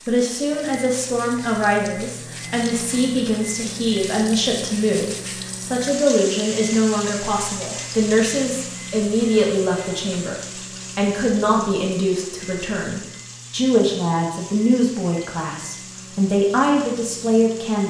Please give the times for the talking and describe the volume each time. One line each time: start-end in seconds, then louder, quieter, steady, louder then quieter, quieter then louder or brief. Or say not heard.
0.0-17.8 steady.